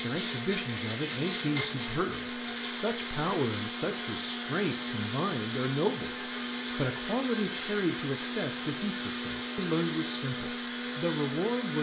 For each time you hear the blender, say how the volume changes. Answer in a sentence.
You can hear the blender from 0.0 to 11.7 s, at a steady volume.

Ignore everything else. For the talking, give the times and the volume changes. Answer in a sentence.
The talking can be heard from 0.0 to 11.7 s, at a steady volume.